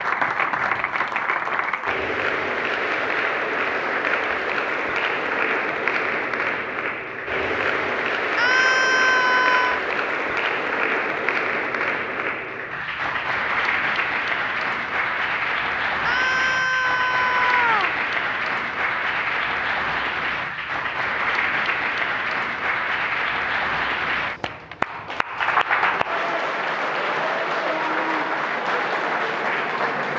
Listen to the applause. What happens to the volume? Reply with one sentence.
The volume of the applause stays about the same.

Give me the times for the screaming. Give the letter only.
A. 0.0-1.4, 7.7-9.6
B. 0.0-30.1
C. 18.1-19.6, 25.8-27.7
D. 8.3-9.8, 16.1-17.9
D.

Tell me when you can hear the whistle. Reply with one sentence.
The whistle can't be heard in this clip.